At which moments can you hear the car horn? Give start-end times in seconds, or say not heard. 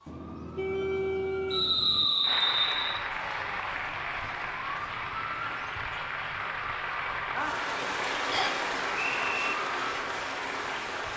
0.1-2.0.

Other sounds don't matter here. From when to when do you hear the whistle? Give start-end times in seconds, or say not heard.
1.5-3.0, 8.3-9.6.